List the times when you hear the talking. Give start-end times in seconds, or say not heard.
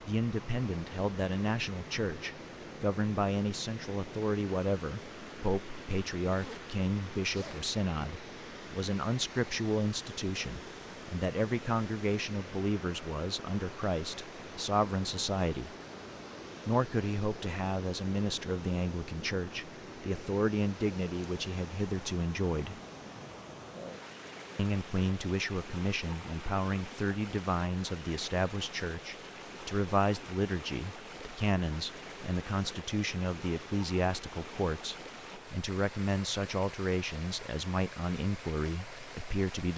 0.1-15.8, 16.6-22.8, 24.6-39.7.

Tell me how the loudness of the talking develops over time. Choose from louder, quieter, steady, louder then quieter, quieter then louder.
steady.